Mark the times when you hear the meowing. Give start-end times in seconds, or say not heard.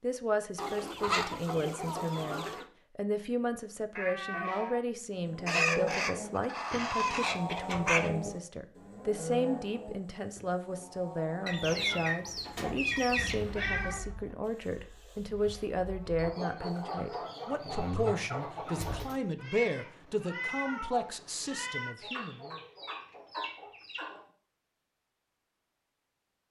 4.0-4.8, 13.2-14.1, 19.4-21.9.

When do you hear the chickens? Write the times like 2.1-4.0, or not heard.
0.6-2.6, 5.5-8.1, 11.4-13.4, 16.1-19.2, 21.9-24.2.